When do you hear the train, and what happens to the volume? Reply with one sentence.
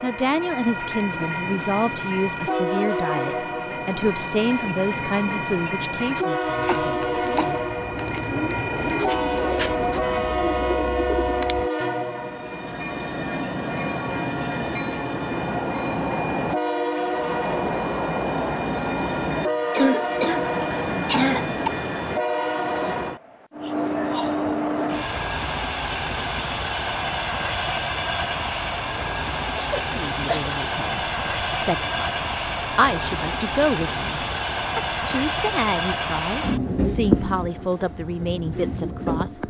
You can hear the train from 0.0 to 39.4 s, at a steady volume.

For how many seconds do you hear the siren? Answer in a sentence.
You can't hear the siren here.